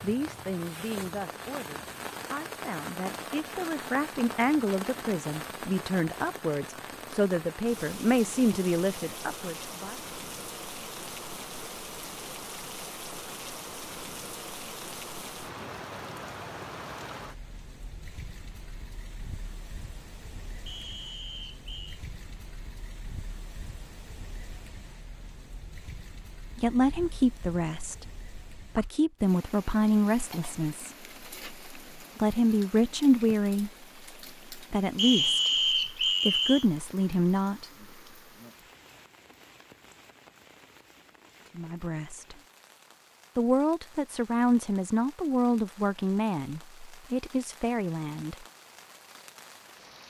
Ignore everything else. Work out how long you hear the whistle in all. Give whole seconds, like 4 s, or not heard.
3 s.